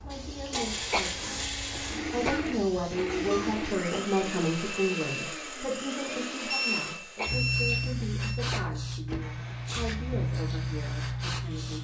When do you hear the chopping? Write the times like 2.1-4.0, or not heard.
not heard.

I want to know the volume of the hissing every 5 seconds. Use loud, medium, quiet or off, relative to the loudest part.
quiet, loud, loud.